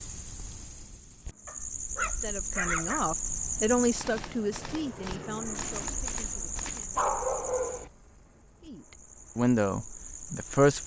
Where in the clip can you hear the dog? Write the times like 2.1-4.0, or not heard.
1.4-3.0, 7.0-7.9.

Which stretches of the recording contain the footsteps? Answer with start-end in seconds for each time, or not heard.
not heard.